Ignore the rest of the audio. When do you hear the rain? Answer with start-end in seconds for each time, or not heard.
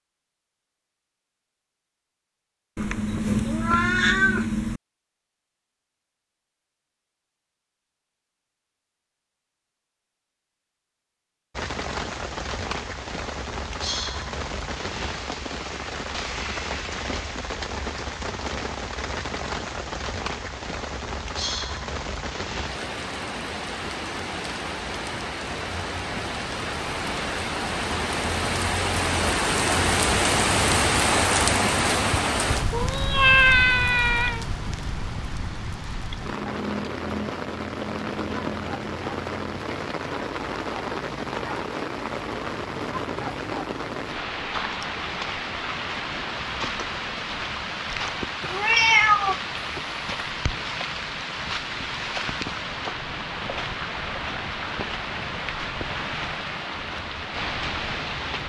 11.6-58.4.